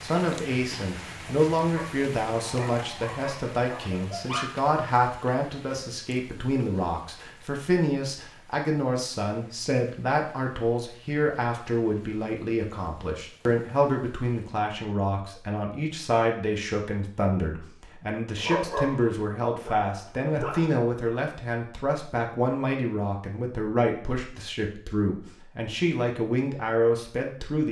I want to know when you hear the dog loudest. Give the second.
19 s.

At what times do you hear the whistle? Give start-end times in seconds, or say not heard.
not heard.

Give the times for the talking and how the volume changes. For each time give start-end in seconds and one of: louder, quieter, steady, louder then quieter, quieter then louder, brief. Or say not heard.
0.0-27.6 steady.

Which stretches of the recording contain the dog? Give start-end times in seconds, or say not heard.
1.8-4.5, 18.4-20.8.